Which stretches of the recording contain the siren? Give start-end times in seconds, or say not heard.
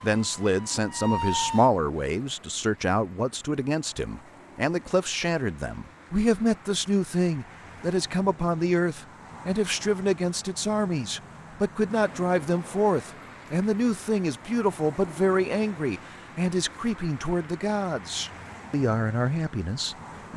0.0-1.7.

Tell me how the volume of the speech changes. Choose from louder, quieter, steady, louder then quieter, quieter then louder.
steady.